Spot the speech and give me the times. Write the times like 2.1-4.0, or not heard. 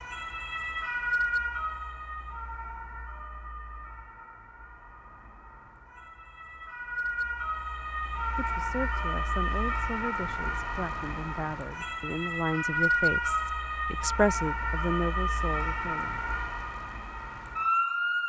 8.3-16.2.